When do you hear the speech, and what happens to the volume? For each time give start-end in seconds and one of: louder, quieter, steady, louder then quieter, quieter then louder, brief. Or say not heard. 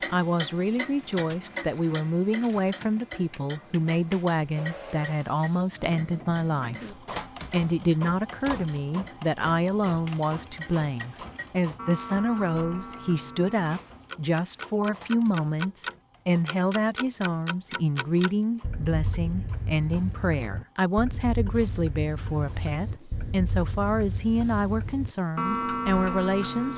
0.1-26.7 steady.